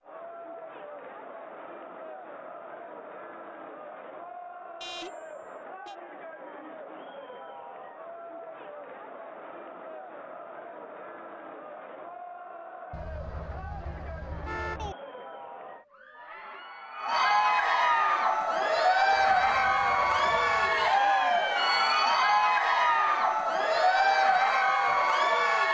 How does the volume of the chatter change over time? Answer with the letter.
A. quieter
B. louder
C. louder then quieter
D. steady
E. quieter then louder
B.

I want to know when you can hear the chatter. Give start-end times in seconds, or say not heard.
0.0-25.6.